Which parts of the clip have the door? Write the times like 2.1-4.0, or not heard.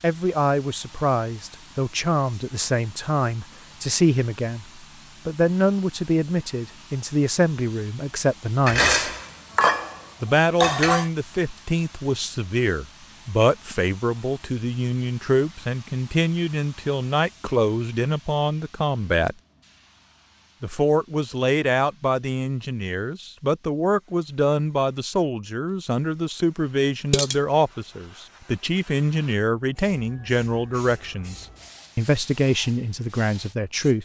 not heard.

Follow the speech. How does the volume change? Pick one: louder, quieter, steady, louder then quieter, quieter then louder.
steady.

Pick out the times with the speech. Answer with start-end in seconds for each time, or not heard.
0.0-9.1, 10.2-19.4, 20.6-33.9.